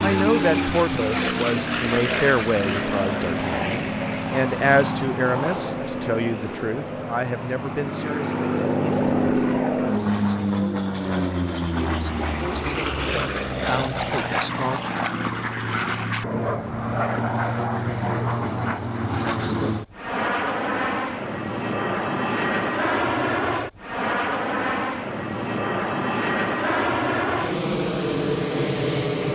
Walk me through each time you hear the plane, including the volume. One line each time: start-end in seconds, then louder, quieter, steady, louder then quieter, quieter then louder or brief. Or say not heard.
0.0-29.2 steady.